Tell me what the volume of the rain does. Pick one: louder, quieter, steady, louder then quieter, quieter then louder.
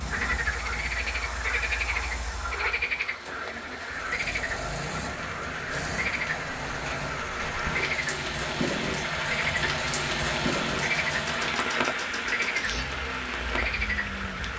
louder.